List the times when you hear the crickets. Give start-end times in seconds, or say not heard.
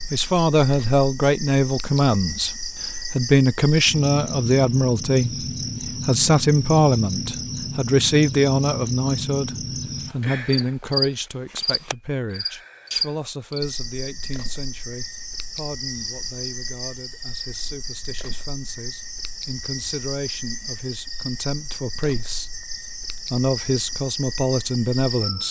0.0-25.4.